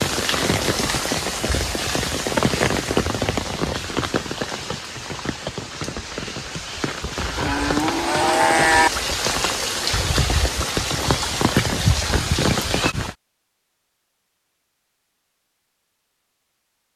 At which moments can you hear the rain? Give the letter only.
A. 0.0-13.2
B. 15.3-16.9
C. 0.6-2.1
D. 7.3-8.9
A.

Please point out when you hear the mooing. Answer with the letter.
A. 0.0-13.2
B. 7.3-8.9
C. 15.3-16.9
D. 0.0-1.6
B.